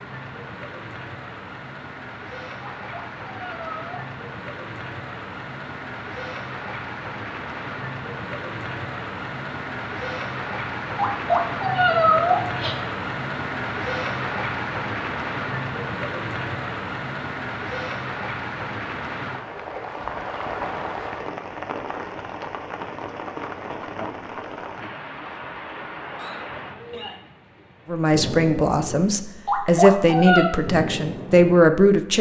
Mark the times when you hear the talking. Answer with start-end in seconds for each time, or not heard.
27.9-32.1.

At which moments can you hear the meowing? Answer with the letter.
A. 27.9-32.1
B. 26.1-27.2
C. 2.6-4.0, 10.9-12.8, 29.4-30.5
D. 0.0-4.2
C.